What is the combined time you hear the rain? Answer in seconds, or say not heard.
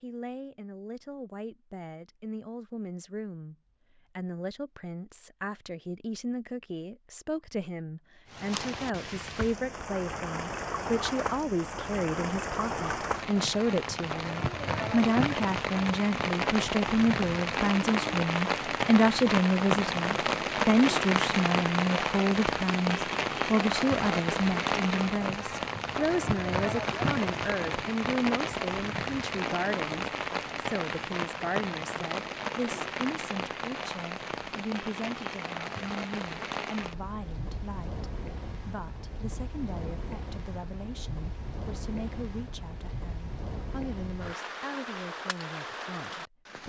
38 s.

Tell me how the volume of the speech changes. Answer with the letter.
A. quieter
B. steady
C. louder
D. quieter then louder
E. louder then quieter
E.